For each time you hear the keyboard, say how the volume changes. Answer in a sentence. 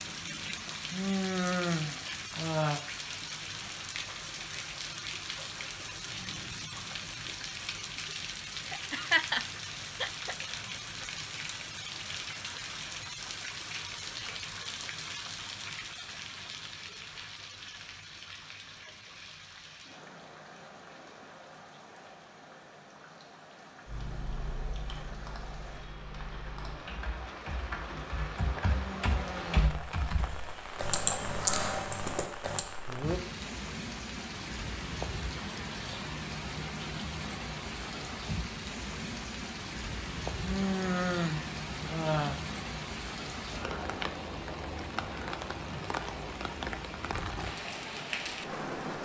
You can hear the keyboard from 23.9 to 32.6 s, getting louder.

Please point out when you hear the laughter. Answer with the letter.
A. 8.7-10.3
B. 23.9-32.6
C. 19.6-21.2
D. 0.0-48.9
A.